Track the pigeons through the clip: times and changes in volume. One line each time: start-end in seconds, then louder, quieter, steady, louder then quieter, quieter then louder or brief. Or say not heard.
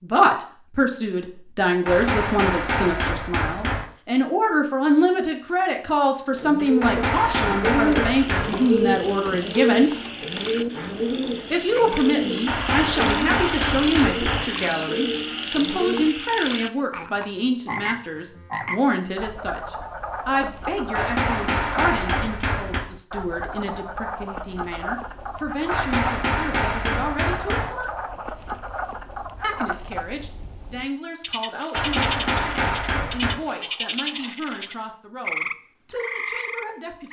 6.3-16.1 quieter.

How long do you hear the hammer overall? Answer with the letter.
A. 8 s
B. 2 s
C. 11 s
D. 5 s
C.